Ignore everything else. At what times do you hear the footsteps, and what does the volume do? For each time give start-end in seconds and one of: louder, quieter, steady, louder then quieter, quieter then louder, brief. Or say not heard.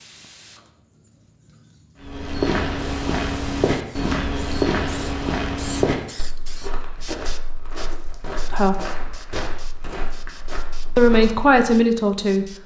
2.0-11.6 quieter.